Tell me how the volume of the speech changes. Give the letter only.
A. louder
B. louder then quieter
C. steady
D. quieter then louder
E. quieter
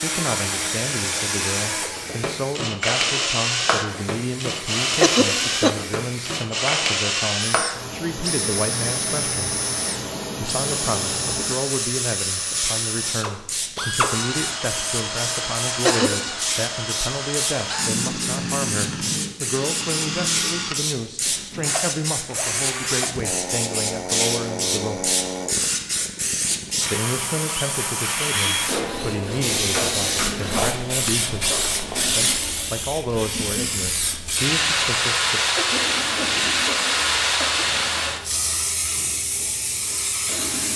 C.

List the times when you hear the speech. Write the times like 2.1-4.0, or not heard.
0.0-9.6, 10.3-25.1, 26.9-35.4.